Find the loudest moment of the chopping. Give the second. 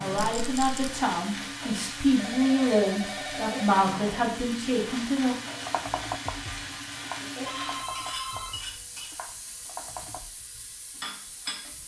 6 s.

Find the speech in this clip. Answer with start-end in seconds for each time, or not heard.
0.0-5.4.